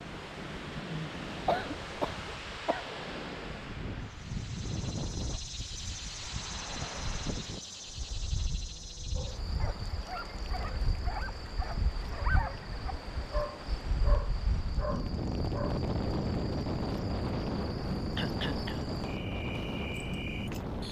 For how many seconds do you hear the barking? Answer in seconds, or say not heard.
7 s.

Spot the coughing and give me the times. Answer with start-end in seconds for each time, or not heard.
1.3-2.9, 18.1-18.9.